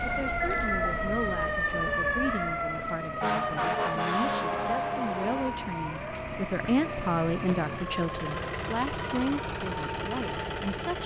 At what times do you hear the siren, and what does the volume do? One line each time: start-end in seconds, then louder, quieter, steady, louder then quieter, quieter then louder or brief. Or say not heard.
0.0-11.0 quieter.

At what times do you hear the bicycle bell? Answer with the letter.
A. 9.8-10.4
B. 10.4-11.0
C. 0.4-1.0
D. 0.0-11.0
C.